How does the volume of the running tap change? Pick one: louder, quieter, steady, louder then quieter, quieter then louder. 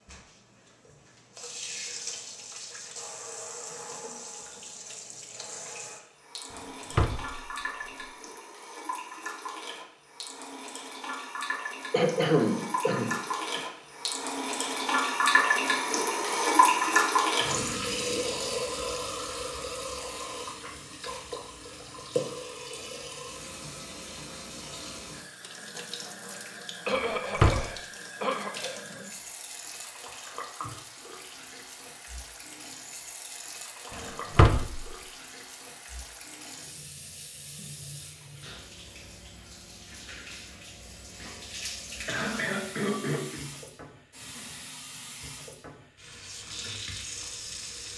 louder then quieter.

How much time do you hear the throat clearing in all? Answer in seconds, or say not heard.
5 s.